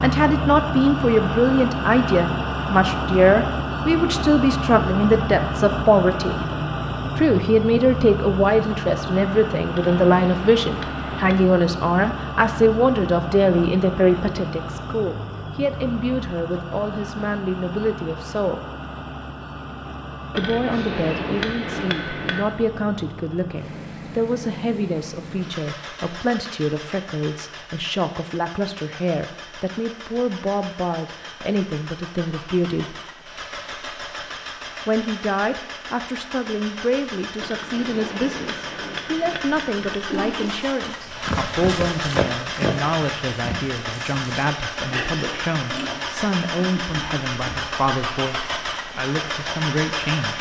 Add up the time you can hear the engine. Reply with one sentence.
The engine can be heard for 50 seconds in total.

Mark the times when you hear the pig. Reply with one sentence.
The pig can be heard from 40.1 to 47.7 s.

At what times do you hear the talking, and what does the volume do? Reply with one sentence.
The talking can be heard from 0.0 to 6.3 s, at a steady volume; from 7.2 to 18.6 s, getting quieter; from 20.4 to 33.0 s, at a steady volume; and from 34.9 to 50.3 s, at a steady volume.